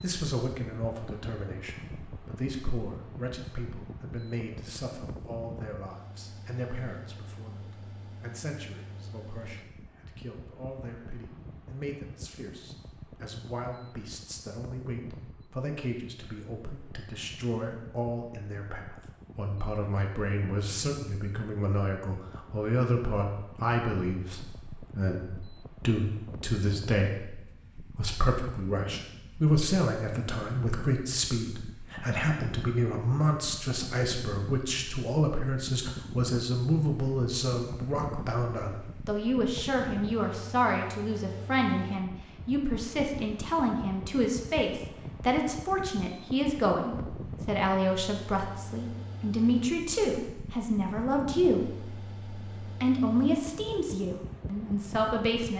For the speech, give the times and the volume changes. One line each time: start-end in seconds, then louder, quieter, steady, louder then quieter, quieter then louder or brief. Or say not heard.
0.0-52.0 louder
52.8-55.5 brief.